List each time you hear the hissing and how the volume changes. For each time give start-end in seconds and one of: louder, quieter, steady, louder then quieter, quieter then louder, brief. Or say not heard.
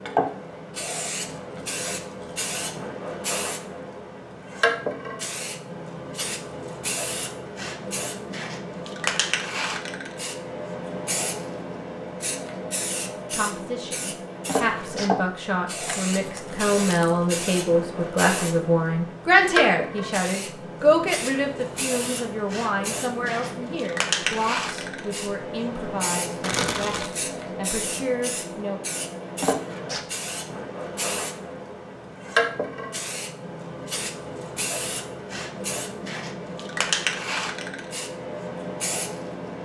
0.0-39.6 steady.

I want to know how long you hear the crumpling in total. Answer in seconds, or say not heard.
2 s.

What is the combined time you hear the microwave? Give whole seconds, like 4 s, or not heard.
not heard.